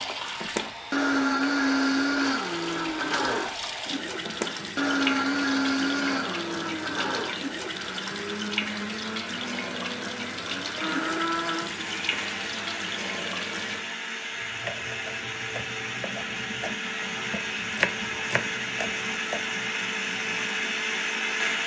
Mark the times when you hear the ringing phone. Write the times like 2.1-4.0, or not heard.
not heard.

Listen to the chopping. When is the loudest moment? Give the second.
18 s.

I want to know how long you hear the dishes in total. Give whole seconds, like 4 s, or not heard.
not heard.